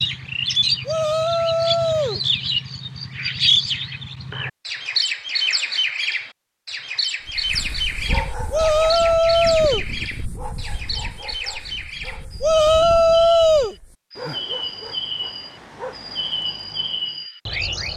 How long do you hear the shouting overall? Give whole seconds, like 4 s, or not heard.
4 s.